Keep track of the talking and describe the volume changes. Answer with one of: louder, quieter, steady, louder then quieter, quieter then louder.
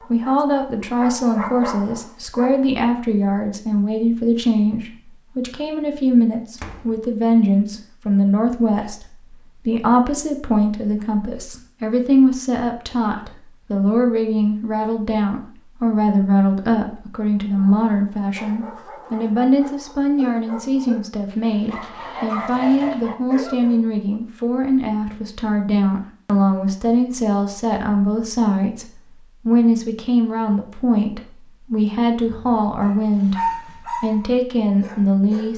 steady.